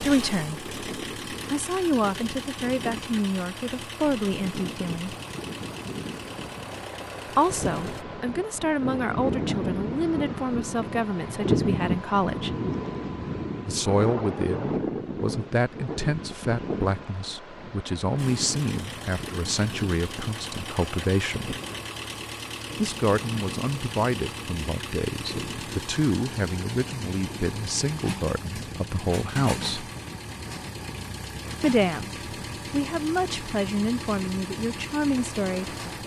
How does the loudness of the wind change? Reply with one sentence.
The volume of the wind goes up, then down.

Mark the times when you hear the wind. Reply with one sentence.
You can hear the wind from 0.0 to 36.0 s.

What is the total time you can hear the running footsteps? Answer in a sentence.
You can't hear the running footsteps here.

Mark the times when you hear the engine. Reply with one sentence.
You can hear the engine from 0.0 to 8.1 s and from 18.1 to 36.0 s.